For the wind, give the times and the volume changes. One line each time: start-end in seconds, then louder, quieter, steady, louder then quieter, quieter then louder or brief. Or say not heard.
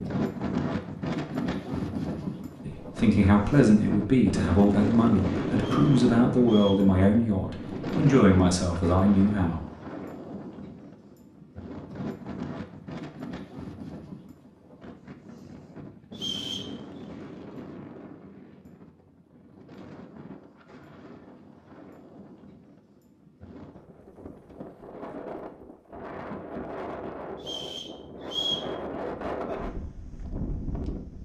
0.0-31.2 quieter then louder.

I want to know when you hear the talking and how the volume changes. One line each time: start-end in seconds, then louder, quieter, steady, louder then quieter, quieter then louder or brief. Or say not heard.
2.6-9.6 steady.